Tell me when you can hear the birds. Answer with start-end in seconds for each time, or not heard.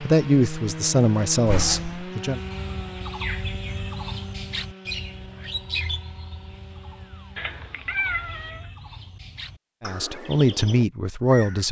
2.2-11.6.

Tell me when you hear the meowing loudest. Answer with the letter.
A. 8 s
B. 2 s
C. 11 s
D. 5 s
A.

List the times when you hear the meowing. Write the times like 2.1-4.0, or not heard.
1.4-2.0, 7.3-8.7.